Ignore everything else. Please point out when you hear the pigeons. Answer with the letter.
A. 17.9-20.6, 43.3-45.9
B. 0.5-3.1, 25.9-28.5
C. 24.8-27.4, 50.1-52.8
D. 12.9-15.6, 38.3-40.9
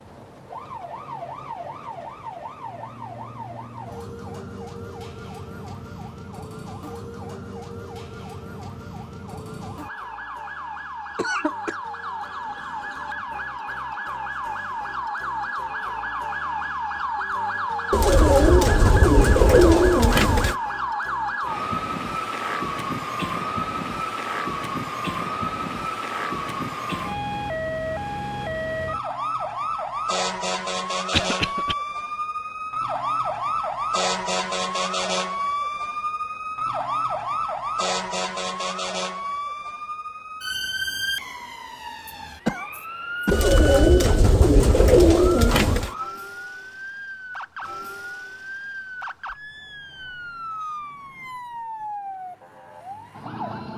A.